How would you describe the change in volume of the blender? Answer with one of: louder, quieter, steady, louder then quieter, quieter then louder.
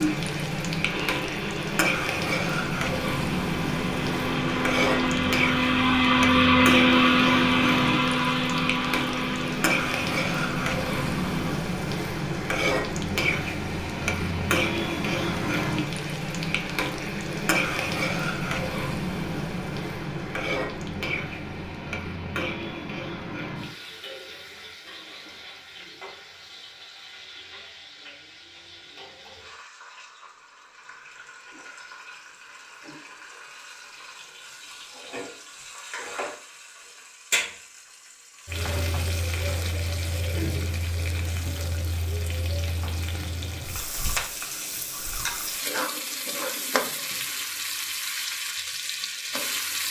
louder then quieter.